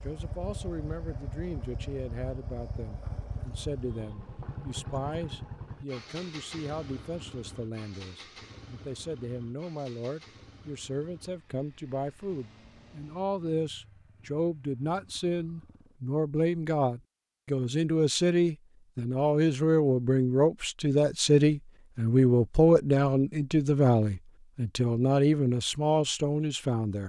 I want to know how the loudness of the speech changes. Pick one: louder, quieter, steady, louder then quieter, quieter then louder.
louder.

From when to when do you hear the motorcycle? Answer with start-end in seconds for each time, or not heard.
0.0-16.0.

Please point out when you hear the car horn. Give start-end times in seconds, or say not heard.
not heard.